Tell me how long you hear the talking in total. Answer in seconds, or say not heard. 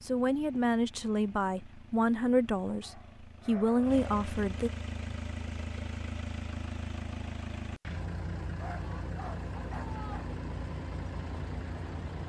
5 s.